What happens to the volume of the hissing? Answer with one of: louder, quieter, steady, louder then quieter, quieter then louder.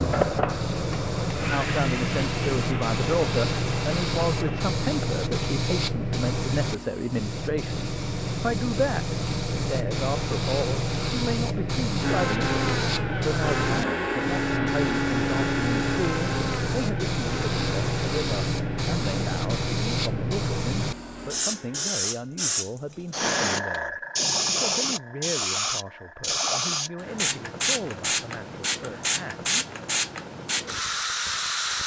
steady.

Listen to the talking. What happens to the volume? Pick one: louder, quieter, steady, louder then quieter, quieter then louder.
quieter.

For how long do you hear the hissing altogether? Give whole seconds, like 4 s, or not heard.
32 s.